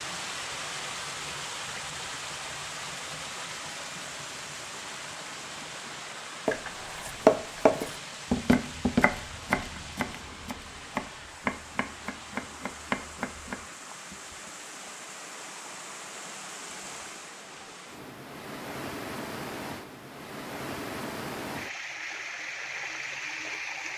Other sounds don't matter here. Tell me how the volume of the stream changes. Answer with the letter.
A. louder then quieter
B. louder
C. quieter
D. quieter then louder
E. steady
D.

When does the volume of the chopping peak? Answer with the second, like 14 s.
7 s.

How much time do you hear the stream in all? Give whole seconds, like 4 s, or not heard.
24 s.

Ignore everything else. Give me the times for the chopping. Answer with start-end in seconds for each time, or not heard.
6.5-13.9.